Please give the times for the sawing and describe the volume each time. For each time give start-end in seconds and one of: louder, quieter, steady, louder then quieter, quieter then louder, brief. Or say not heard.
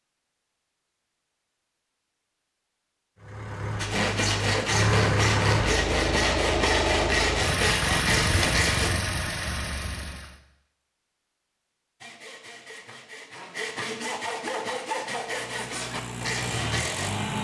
3.8-8.9 steady
12.0-17.1 louder.